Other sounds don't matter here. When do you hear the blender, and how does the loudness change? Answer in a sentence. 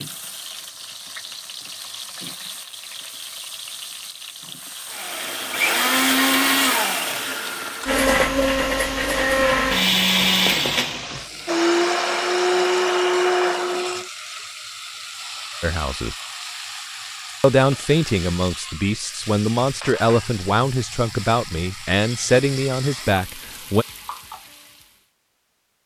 The blender can be heard from 4.9 to 14.1 s, at a steady volume.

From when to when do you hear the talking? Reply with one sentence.
The talking can be heard from 15.6 to 16.1 s and from 17.4 to 23.9 s.